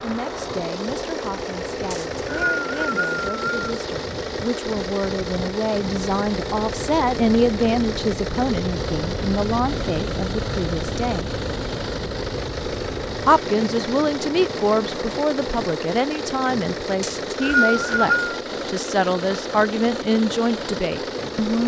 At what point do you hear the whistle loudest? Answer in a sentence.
The volume of the whistle peaks at 18 seconds.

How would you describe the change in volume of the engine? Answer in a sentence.
The volume of the engine stays about the same.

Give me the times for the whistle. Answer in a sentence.
The whistle can be heard from 1.9 to 3.5 s and from 17.0 to 18.4 s.